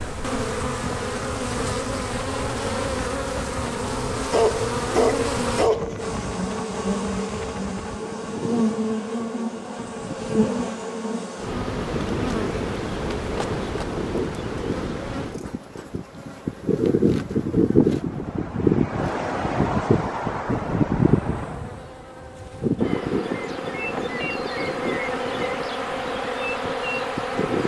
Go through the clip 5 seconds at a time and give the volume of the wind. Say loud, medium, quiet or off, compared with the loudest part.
quiet, quiet, medium, loud, loud, medium.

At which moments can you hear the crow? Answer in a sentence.
You can't hear the crow here.